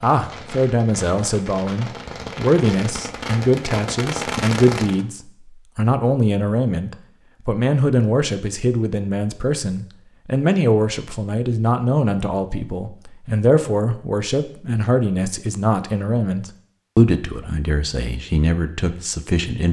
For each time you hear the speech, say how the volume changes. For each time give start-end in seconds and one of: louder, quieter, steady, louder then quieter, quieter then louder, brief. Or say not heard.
0.0-19.6 steady.